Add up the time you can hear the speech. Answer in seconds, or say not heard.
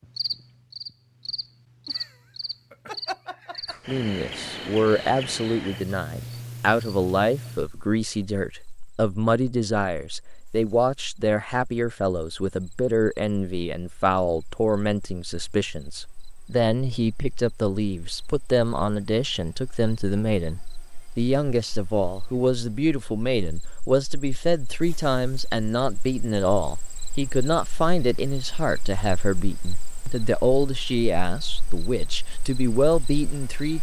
30 s.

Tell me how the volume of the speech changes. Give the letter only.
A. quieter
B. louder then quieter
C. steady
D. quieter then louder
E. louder
C.